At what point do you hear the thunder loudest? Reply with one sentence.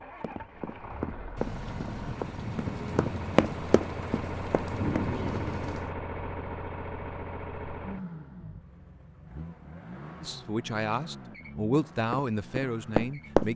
The volume of the thunder peaks at 5 seconds.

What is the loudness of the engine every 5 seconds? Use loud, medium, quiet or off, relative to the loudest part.
loud, loud, medium.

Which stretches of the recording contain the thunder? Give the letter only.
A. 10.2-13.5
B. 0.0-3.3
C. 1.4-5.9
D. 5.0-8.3
C.